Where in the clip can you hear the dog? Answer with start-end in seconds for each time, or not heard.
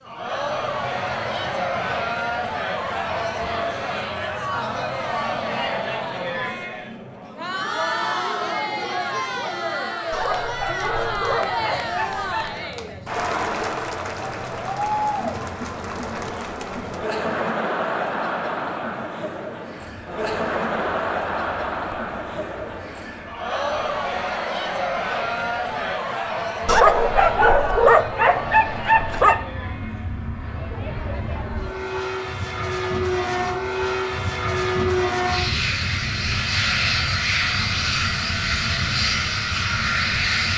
10.1-12.6, 26.6-29.4.